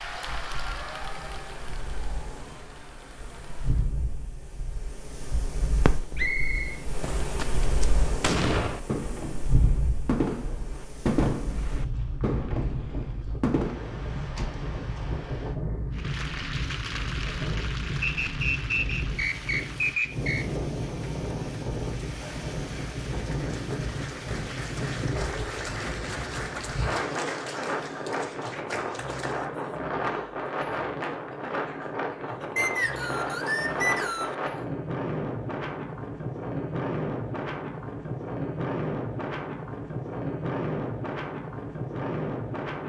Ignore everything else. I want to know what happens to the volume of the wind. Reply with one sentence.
The loudness of the wind goes up.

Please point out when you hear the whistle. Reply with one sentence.
The whistle can be heard from 6.2 to 6.8 s, from 18.0 to 20.4 s and from 32.5 to 34.4 s.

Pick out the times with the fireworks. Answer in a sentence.
The fireworks can be heard from 5.8 to 6.3 s and from 7.0 to 14.5 s.